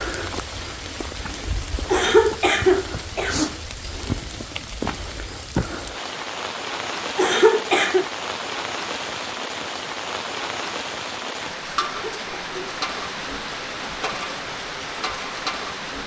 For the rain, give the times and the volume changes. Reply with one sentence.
The rain can be heard from 0.0 to 16.0 s, at a steady volume.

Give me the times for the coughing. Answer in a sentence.
The coughing can be heard from 1.9 to 3.5 s, from 7.2 to 8.1 s and from 11.8 to 12.8 s.